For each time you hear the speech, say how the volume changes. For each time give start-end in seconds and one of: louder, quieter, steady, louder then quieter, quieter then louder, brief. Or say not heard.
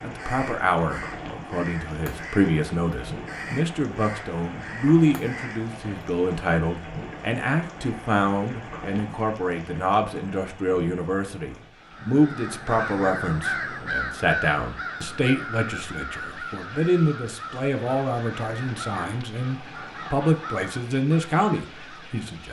0.0-22.4 steady.